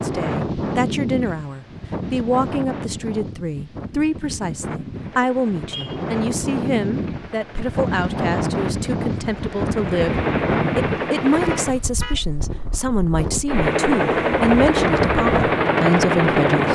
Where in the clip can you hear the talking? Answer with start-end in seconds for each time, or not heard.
0.0-16.6.